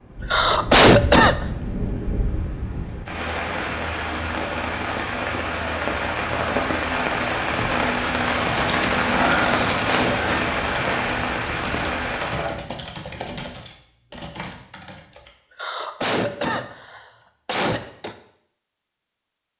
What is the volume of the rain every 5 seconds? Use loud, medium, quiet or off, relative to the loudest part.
medium, loud, loud, off.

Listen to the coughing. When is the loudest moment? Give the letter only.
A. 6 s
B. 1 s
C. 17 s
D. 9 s
B.